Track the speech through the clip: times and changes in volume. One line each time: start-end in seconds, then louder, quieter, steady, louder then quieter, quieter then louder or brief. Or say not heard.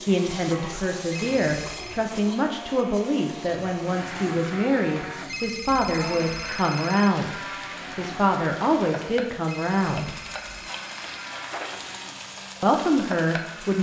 0.0-10.2 steady
12.6-13.7 brief.